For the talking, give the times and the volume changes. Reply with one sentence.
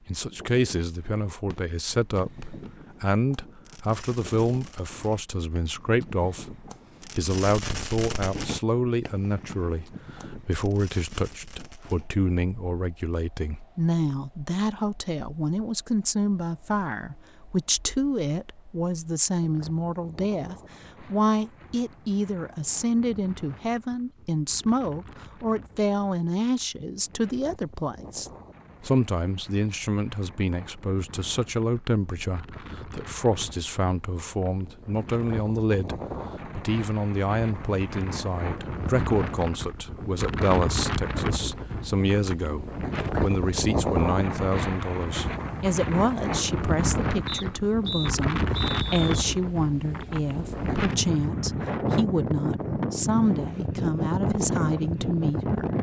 The talking can be heard from 0.1 to 55.7 s, at a steady volume.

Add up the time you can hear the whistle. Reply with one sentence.
The whistle can be heard for 2 seconds in total.